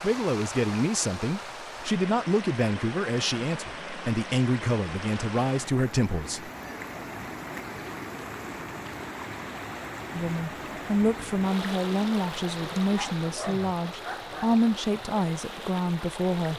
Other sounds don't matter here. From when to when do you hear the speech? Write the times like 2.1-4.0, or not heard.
0.0-6.5, 10.1-16.5.